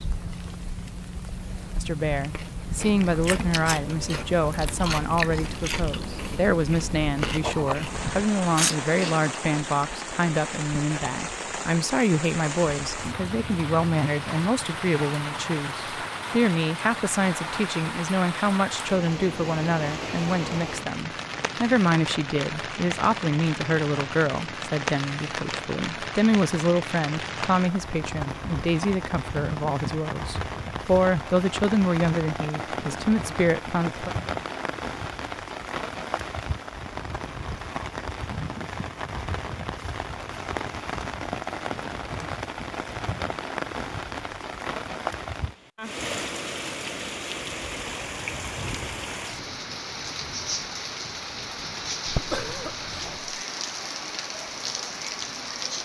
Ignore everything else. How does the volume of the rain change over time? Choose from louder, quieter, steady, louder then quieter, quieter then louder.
steady.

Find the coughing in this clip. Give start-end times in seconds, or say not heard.
52.0-53.4.